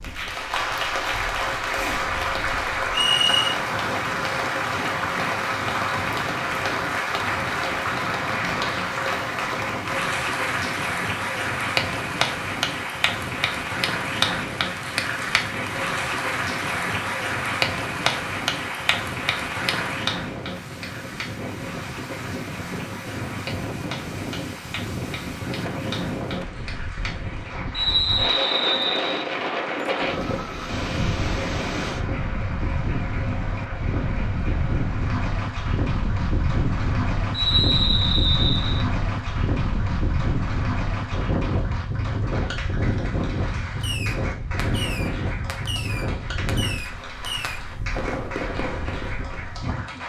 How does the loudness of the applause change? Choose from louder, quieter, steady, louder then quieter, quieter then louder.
quieter.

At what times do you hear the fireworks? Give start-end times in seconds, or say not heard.
43.8-49.2.